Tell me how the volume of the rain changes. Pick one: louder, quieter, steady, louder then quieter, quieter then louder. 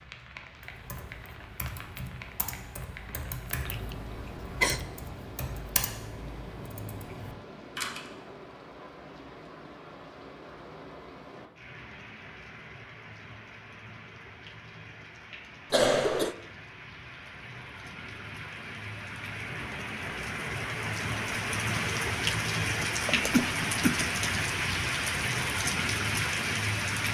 louder.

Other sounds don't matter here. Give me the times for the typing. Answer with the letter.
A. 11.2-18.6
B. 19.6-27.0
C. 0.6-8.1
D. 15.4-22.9
C.